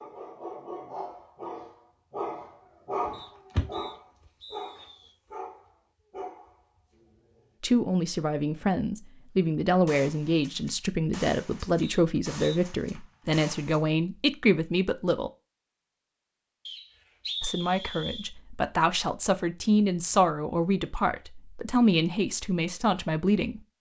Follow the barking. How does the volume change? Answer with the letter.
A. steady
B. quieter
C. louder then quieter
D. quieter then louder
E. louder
C.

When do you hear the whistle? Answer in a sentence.
The whistle can be heard from 3.1 to 5.2 s, from 11.8 to 12.6 s and from 16.6 to 18.3 s.